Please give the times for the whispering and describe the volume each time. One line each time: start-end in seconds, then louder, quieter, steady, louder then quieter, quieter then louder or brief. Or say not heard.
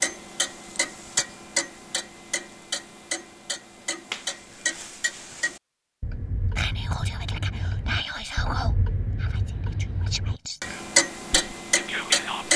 6.5-12.5 quieter then louder.